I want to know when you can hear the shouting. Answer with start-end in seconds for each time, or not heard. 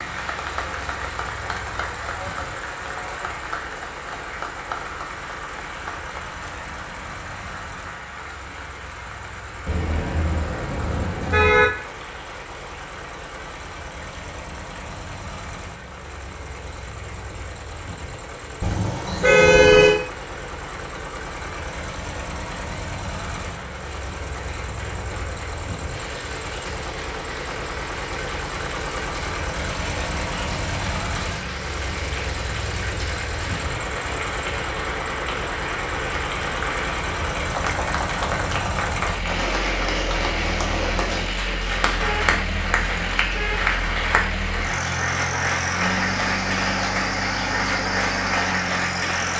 not heard.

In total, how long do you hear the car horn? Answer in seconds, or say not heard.
5 s.